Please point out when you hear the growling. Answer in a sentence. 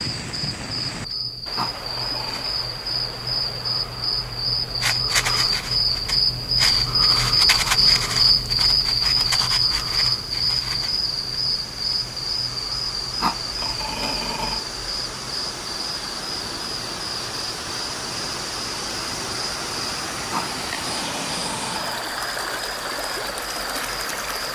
You can hear the growling from 1.6 to 2.5 s, from 13.2 to 14.6 s and from 20.3 to 22.1 s.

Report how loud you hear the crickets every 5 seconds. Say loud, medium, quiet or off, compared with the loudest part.
medium, loud, medium, quiet, quiet.